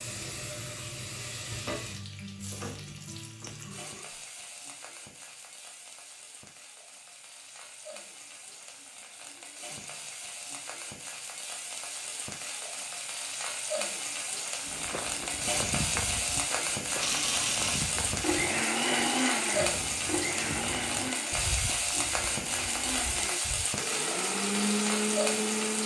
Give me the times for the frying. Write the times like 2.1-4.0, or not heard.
0.0-25.8.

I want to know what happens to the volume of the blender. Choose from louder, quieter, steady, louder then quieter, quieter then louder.
quieter then louder.